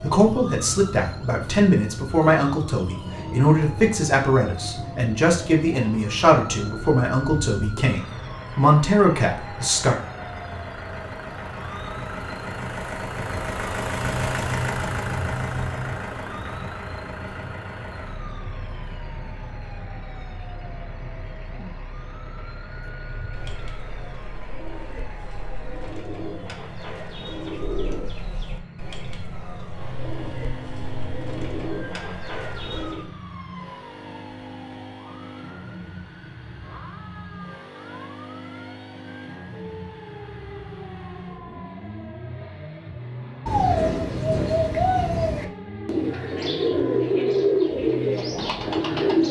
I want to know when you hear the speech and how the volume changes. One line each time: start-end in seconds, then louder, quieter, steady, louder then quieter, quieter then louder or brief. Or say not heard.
0.0-9.9 steady.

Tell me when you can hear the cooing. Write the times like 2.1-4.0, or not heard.
23.3-33.1, 43.5-49.2.